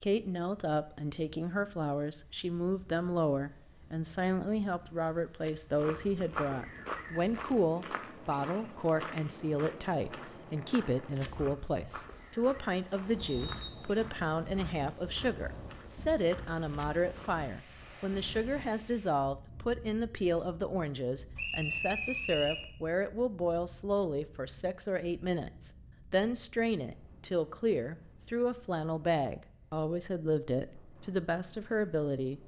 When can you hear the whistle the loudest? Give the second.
22 s.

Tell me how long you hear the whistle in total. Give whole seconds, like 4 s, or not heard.
2 s.